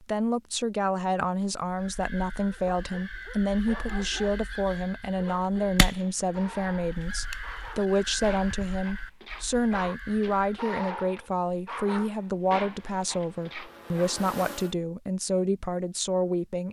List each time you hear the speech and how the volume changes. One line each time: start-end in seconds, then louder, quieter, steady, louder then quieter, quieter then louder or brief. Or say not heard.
0.0-16.6 steady.